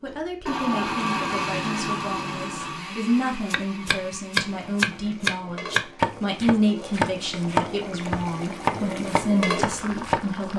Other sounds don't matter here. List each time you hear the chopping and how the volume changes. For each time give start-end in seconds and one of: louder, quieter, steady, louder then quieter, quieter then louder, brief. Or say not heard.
3.5-10.5 quieter.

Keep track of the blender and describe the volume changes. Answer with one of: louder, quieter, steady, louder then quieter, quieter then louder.
quieter.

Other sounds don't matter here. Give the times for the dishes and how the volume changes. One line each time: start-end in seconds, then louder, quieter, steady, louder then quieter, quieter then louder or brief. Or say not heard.
not heard.